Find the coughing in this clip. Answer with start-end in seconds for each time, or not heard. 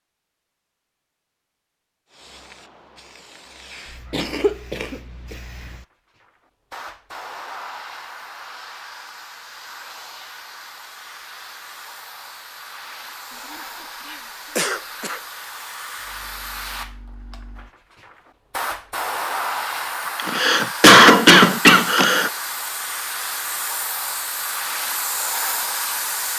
4.1-5.3, 14.1-15.2, 20.1-22.3.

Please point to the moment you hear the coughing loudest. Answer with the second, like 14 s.
21 s.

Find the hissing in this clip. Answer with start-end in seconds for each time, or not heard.
2.0-26.3.